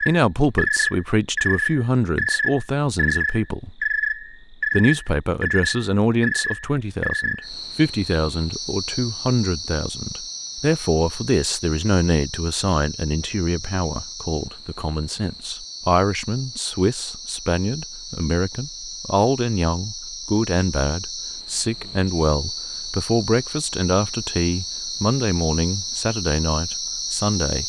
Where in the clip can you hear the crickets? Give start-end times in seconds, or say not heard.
0.0-27.6.